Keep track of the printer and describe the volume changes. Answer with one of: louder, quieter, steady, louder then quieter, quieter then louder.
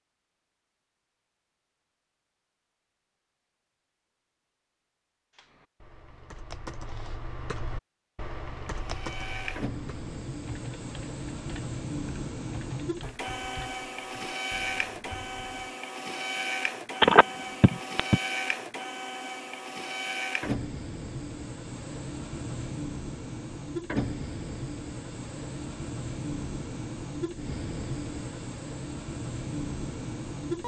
steady.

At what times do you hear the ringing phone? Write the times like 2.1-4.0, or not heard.
17.0-18.2.